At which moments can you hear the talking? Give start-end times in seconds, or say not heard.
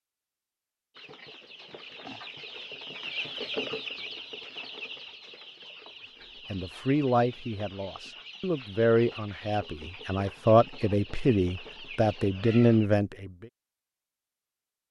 6.5-13.3.